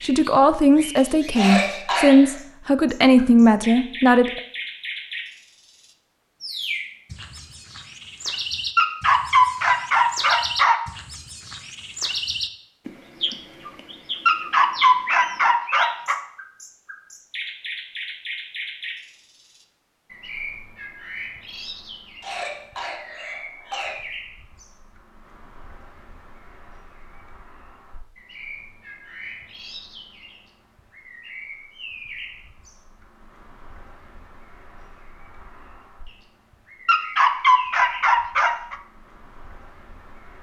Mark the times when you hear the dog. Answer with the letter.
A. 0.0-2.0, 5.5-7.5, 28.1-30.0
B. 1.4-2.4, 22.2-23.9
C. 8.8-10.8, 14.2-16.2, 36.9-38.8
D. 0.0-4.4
C.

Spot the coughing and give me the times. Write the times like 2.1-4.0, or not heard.
1.4-2.4, 22.2-23.9.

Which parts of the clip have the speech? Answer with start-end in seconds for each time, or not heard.
0.0-4.4.